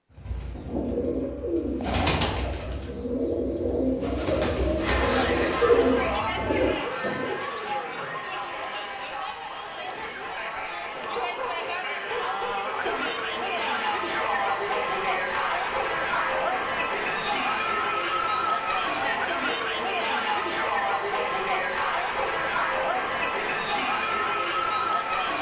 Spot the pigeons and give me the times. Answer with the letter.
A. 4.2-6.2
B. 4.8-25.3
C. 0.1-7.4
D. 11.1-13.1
C.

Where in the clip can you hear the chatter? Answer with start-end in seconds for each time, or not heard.
4.8-25.3.